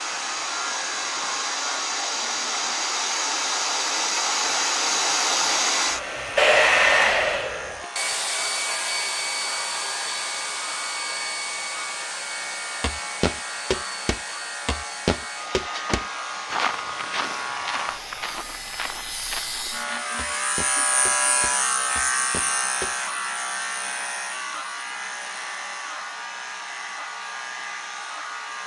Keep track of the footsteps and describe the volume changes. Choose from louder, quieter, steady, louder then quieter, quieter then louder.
quieter.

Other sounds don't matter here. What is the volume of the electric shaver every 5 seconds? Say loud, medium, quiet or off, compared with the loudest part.
medium, medium, medium, medium, loud, medium.